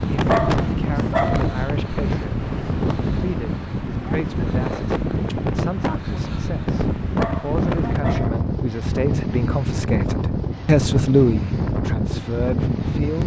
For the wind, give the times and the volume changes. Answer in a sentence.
You can hear the wind from 0.0 to 13.2 s, at a steady volume.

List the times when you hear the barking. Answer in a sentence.
You can hear the barking from 0.2 to 1.6 s and from 7.2 to 8.3 s.